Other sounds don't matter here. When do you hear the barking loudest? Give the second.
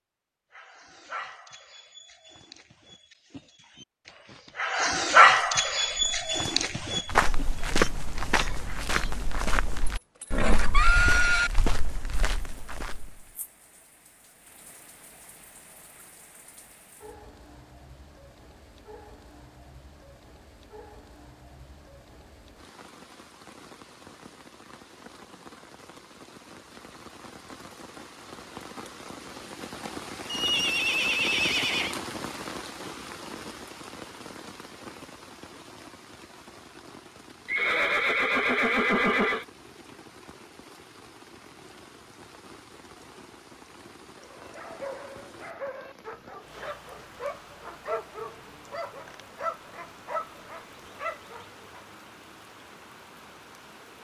5 s.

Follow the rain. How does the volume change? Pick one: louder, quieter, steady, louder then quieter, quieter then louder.
louder then quieter.